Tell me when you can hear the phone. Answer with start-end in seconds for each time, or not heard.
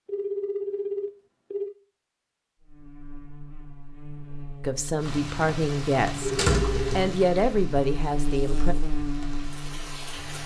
0.1-1.7, 6.2-6.9.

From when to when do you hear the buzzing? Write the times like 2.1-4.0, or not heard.
2.6-10.4.